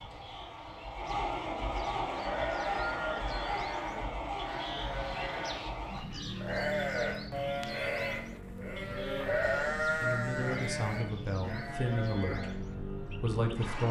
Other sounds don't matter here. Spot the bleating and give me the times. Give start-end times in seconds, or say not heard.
1.9-12.6.